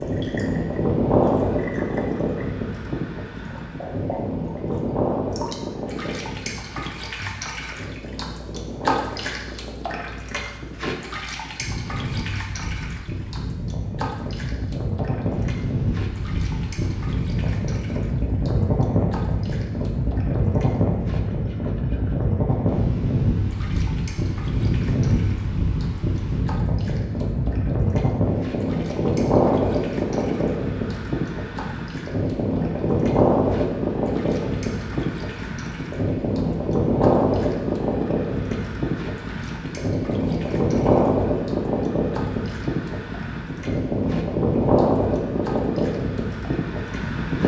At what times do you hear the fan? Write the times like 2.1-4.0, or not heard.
0.0-47.4.